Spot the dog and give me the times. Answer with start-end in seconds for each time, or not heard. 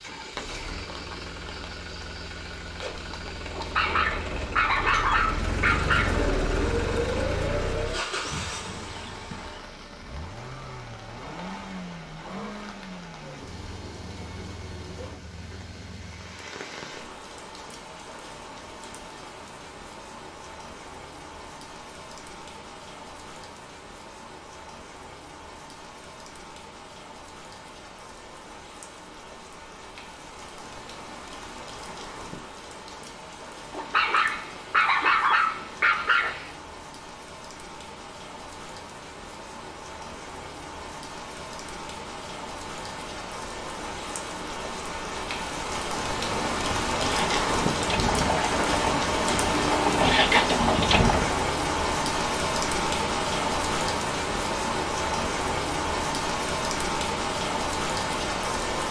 3.5-6.2, 33.7-36.5.